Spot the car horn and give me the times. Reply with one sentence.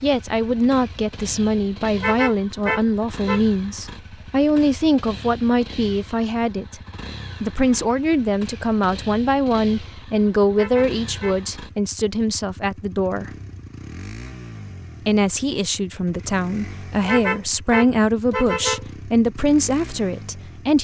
The car horn can be heard from 1.9 to 3.5 s, from 10.5 to 11.4 s and from 17.0 to 18.9 s.